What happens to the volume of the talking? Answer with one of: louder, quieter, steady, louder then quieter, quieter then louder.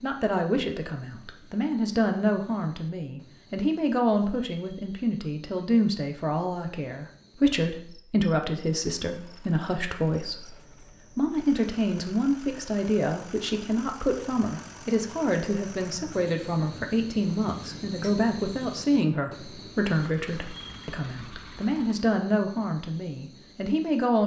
steady.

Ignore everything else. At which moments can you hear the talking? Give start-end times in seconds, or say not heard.
0.0-24.2.